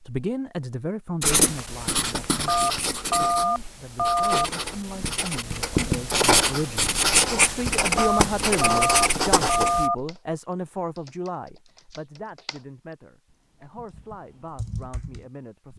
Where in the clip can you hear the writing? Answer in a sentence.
The writing can be heard from 1.2 to 9.9 s.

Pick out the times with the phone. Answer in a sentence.
You can hear the phone from 2.5 to 4.5 s and from 8.0 to 9.9 s.